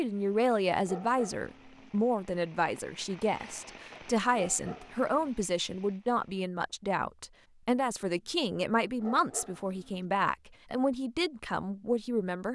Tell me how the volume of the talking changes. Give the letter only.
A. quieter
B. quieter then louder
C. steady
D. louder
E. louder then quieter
C.